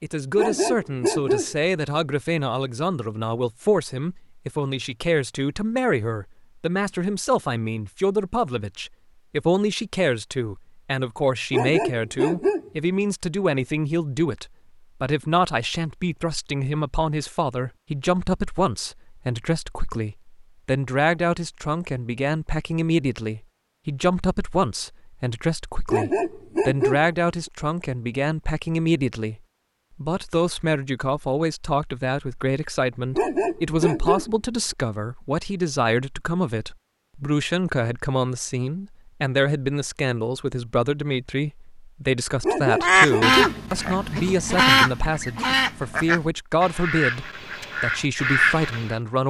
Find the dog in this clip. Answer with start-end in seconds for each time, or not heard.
0.3-1.6, 11.5-12.7, 25.9-27.1, 33.1-34.4, 42.4-43.6.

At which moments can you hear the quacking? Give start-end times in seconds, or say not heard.
42.8-49.0.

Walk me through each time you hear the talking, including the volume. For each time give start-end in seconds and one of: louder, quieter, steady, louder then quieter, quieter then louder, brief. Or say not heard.
0.0-49.2 steady.